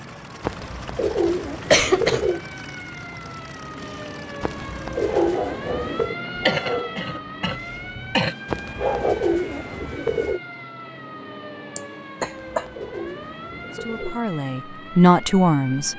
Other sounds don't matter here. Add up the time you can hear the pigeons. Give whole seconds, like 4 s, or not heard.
8 s.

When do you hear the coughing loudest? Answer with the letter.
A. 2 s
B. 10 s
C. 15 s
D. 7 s
A.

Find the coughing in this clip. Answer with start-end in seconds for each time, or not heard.
1.7-2.2, 6.3-8.3, 11.8-12.7.